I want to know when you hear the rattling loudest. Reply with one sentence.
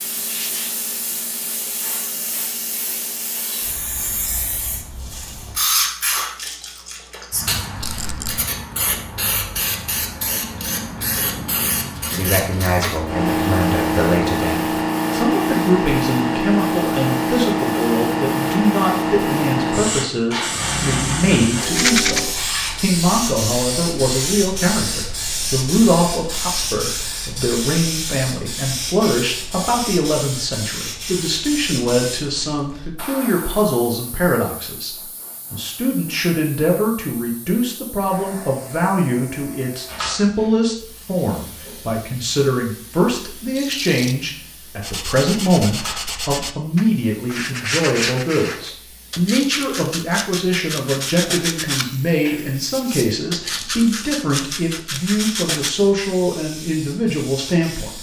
The loudest moment of the rattling is at 22 seconds.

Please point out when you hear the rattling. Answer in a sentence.
You can hear the rattling from 7.8 to 8.4 s, from 21.6 to 22.2 s and from 43.5 to 44.1 s.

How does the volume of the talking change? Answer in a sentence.
The loudness of the talking stays about the same.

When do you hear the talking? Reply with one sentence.
The talking can be heard from 12.1 to 57.9 s.